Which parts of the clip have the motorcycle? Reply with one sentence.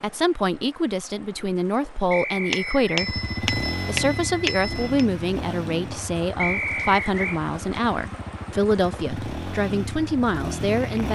You can hear the motorcycle from 3.0 to 11.1 s.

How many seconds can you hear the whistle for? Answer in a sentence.
The whistle can be heard for 2 seconds in total.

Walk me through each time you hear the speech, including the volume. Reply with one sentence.
The speech can be heard from 0.0 to 11.1 s, at a steady volume.